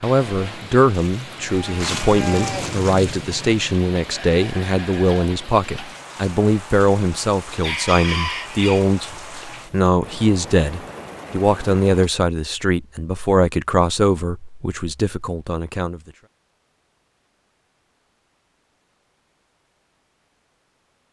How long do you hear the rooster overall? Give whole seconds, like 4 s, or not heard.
2 s.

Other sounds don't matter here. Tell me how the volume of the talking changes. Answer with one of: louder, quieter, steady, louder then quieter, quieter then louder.
steady.